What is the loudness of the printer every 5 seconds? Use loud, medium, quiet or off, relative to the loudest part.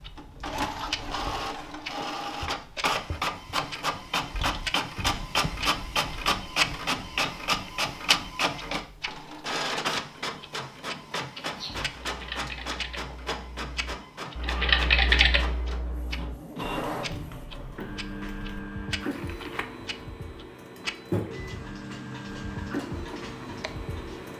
loud, loud, medium, medium, medium.